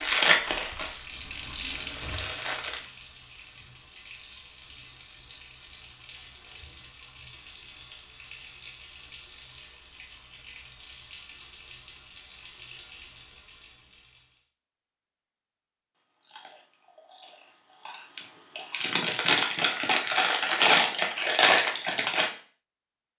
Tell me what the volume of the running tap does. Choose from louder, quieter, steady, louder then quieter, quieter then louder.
quieter.